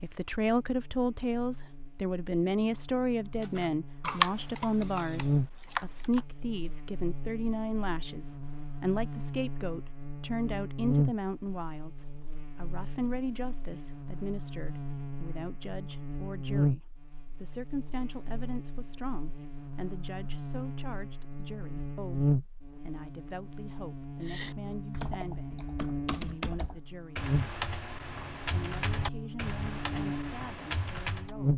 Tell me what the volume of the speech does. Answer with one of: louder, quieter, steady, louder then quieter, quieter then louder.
quieter.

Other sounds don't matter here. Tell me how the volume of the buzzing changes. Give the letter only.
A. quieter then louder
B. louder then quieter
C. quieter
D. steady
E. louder
D.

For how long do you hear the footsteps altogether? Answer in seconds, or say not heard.
not heard.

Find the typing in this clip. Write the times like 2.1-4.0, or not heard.
3.4-6.2, 24.2-31.4.